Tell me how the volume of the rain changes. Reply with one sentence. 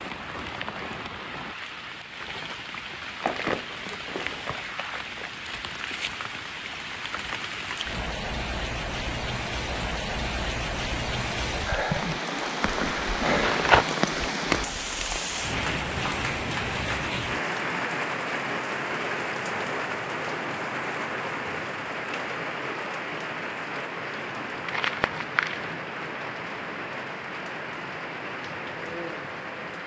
The volume of the rain goes up, then down.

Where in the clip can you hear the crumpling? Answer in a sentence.
The crumpling can be heard from 3.2 to 5.2 s, from 13.4 to 14.0 s and from 24.6 to 25.8 s.